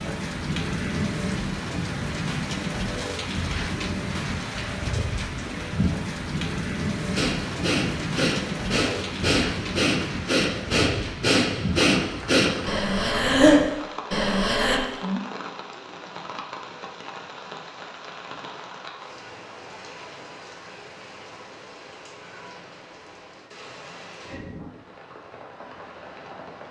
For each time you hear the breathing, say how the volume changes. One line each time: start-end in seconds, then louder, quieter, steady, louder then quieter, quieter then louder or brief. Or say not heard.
7.2-14.8 louder.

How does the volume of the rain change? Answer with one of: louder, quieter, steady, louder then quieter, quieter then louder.
quieter.